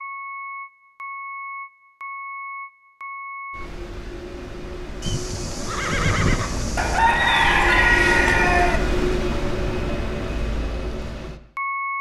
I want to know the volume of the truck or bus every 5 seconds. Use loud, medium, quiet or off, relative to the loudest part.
medium, loud, loud.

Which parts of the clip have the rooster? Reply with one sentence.
You can hear the rooster from 6.8 to 8.8 s.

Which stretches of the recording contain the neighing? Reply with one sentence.
The neighing can be heard from 5.0 to 7.0 s.